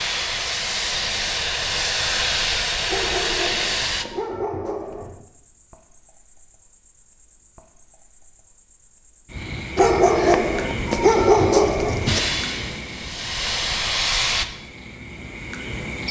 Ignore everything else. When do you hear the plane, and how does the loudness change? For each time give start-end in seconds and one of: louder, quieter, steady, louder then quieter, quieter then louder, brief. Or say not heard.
0.0-4.0 steady
12.1-14.4 brief.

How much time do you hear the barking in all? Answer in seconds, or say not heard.
5 s.